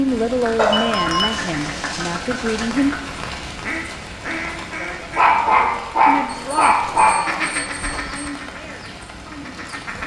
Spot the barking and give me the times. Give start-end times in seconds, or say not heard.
0.6-2.6, 5.2-7.3.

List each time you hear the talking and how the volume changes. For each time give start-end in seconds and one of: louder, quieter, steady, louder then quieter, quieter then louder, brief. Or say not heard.
0.0-3.0 brief
4.8-10.0 louder then quieter.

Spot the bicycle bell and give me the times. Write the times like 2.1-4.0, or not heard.
0.7-1.4, 6.4-8.3.